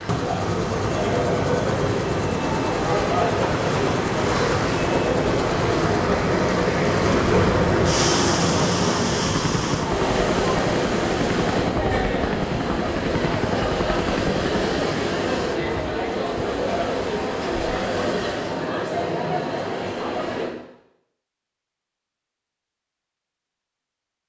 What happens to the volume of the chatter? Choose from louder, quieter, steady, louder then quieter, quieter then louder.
steady.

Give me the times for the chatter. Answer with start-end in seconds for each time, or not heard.
0.1-20.5.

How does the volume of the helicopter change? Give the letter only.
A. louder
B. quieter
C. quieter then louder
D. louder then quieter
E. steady
E.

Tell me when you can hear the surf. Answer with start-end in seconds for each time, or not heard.
0.0-18.7.